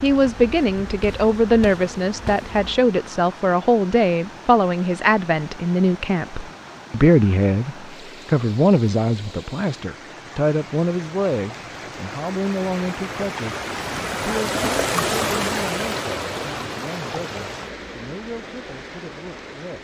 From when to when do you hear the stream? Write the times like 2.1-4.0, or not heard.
0.0-19.8.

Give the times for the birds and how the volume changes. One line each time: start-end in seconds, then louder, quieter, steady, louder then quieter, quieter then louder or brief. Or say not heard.
not heard.